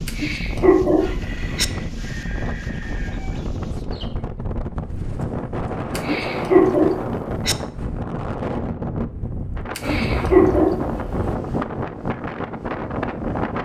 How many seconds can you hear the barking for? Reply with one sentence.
You can hear the barking for 4 seconds altogether.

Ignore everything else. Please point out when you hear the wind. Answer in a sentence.
You can hear the wind from 0.0 to 13.6 s.